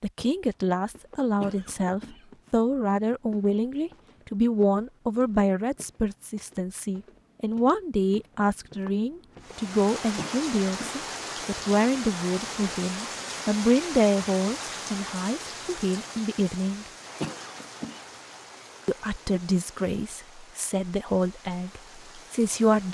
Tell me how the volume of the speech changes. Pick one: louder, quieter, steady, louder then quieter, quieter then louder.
steady.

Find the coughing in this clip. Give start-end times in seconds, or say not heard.
1.4-2.2, 10.2-11.1, 17.2-18.1.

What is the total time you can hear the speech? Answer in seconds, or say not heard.
21 s.